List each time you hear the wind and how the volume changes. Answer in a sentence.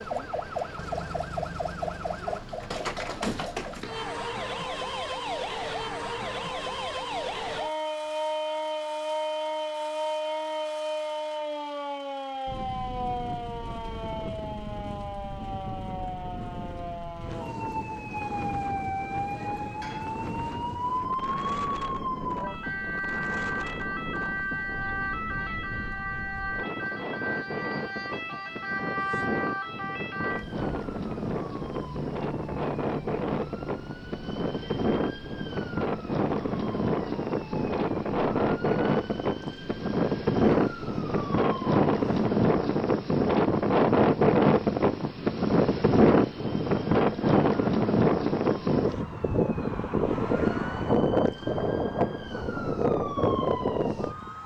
The wind can be heard from 12.4 to 54.4 s, getting louder.